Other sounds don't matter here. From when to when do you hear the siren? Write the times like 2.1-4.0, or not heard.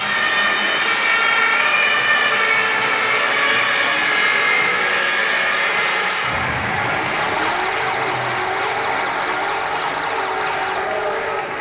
0.0-11.3.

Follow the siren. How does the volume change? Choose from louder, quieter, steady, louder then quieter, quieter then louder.
quieter.